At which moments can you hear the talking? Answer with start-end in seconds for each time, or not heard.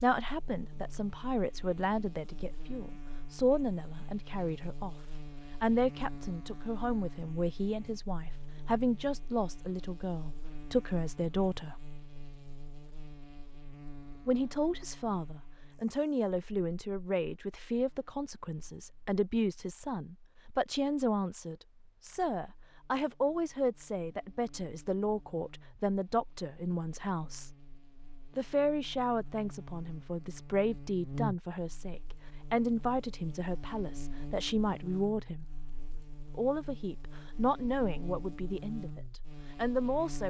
0.0-5.0, 5.6-11.8, 14.2-27.5, 28.4-35.5, 36.4-40.2.